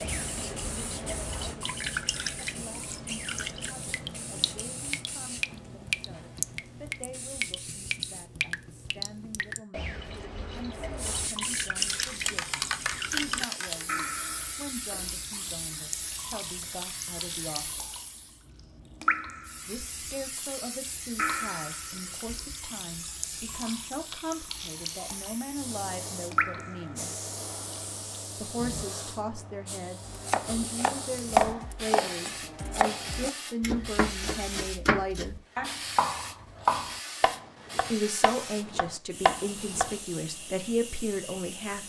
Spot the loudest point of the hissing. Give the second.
13 s.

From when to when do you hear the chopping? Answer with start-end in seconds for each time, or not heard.
30.1-40.0.